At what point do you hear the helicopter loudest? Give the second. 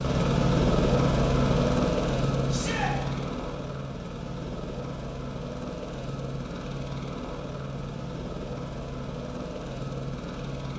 1 s.